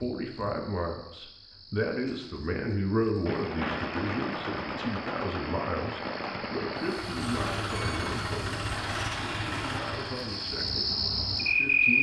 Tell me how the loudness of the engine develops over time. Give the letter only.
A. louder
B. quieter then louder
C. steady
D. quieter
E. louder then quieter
D.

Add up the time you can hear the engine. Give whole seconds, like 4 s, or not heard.
5 s.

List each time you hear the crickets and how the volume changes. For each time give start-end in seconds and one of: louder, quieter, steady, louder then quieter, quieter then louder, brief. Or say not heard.
0.0-11.9 louder.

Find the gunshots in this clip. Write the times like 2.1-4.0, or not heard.
3.2-7.2.